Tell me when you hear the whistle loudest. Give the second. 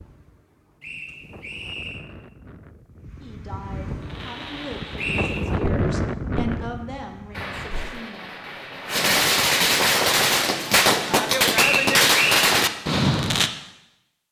12 s.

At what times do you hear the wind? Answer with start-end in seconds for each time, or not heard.
0.0-8.0.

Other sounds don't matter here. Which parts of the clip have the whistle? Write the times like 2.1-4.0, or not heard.
0.8-2.0, 5.0-5.5, 11.6-12.5.